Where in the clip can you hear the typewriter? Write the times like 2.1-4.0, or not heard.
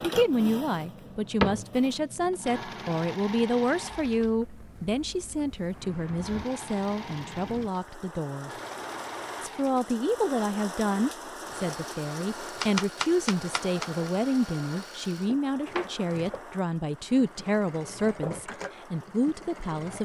12.6-13.9.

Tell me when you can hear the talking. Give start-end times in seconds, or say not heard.
0.0-8.5, 9.4-19.9.